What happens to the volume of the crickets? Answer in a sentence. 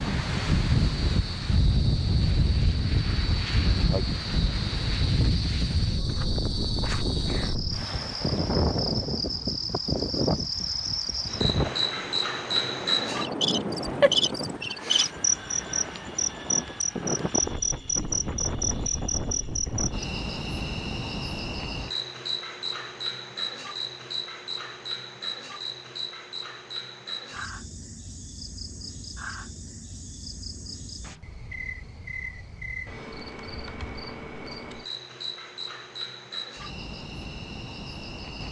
The volume of the crickets goes up, then down.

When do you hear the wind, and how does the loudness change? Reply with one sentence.
The wind can be heard from 0.0 to 20.1 s, getting quieter.